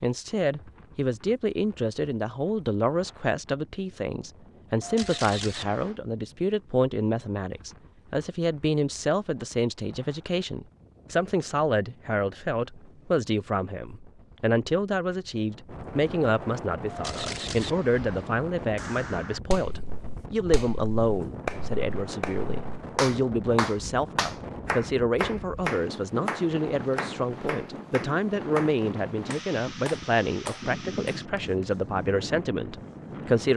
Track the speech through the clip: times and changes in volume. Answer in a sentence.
You can hear the speech from 0.0 to 33.5 s, at a steady volume.